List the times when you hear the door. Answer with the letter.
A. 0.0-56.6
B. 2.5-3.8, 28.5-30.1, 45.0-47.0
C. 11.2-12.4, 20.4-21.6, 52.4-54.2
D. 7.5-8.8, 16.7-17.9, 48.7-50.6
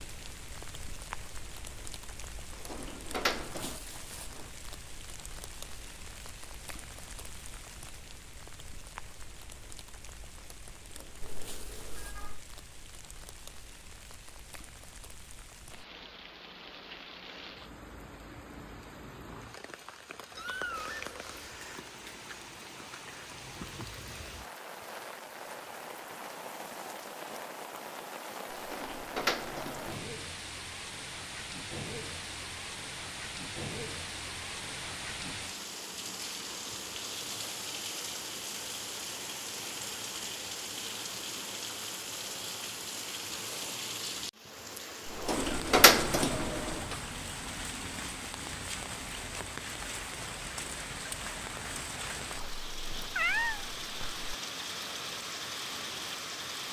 B.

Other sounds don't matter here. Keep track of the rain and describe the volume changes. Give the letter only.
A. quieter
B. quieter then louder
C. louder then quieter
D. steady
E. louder
E.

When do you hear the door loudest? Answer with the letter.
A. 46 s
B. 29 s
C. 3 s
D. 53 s
A.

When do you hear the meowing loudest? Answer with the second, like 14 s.
53 s.